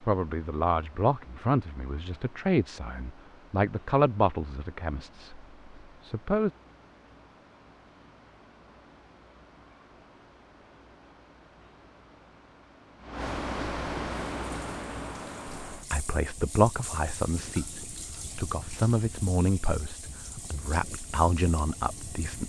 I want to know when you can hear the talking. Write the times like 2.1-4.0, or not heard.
0.0-6.5, 15.7-22.4.